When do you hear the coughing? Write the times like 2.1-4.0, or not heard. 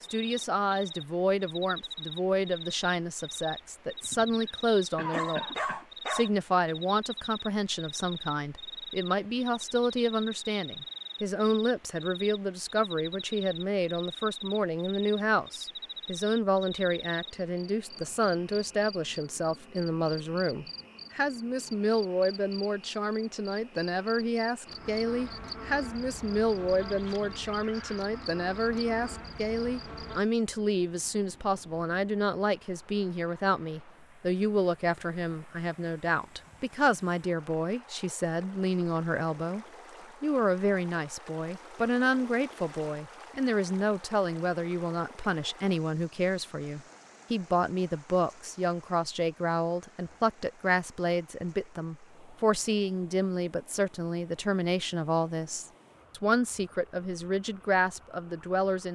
4.0-5.8.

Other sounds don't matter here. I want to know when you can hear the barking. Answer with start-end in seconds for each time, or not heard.
5.1-6.8.